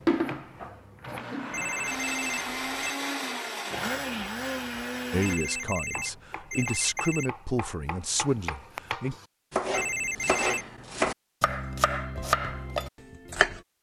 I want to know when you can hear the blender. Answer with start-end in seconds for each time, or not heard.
0.0-6.7.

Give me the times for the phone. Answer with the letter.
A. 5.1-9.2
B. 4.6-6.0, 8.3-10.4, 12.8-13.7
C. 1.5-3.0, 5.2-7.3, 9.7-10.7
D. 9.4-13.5
C.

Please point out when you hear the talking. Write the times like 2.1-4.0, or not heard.
5.1-9.2.